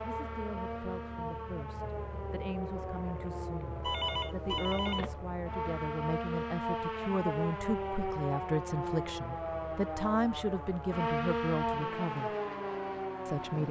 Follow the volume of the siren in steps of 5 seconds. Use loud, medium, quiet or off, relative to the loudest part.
medium, loud, loud.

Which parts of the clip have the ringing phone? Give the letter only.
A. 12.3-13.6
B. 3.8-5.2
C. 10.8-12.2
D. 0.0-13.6
B.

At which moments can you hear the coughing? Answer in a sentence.
The coughing can't be heard in this clip.